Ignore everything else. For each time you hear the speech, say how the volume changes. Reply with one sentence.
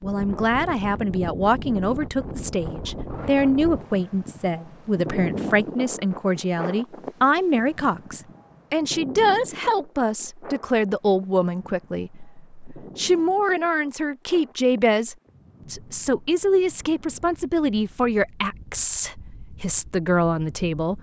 You can hear the speech from 0.0 to 20.9 s, at a steady volume.